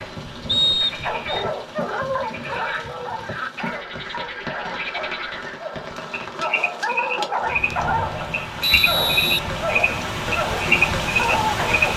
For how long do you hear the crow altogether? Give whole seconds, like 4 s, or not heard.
not heard.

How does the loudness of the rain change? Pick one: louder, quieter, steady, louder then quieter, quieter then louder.
louder.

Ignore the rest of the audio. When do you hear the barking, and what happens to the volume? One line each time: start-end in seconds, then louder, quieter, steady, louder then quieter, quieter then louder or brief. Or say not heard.
1.0-11.9 quieter then louder.